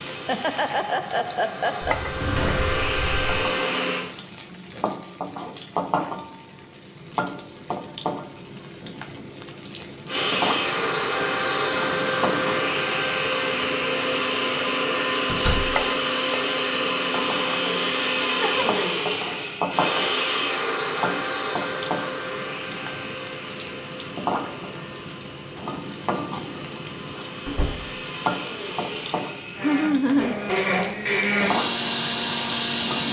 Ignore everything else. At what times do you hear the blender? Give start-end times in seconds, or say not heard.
0.0-4.0, 10.1-33.0.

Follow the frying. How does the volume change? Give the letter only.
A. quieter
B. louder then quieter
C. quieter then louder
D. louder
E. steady
E.